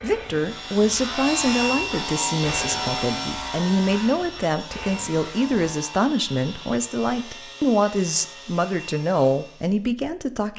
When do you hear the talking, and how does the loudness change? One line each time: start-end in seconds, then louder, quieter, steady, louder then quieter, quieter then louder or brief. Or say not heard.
0.0-10.5 steady.